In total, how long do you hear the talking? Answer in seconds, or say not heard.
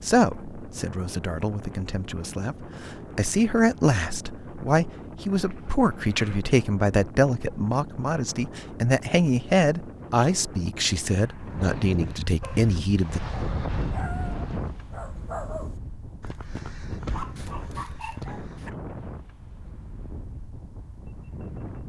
13 s.